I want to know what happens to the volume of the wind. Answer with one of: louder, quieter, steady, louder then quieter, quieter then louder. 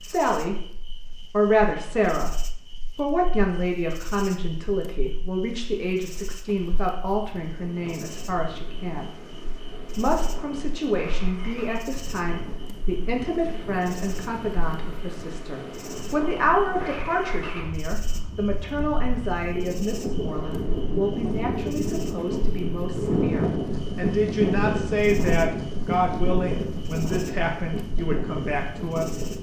louder.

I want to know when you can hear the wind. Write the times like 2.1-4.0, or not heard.
7.2-29.3.